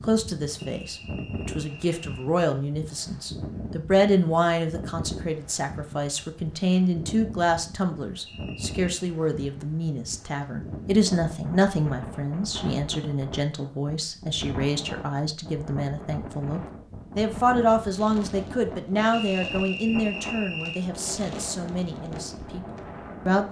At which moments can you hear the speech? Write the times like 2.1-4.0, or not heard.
0.0-23.4.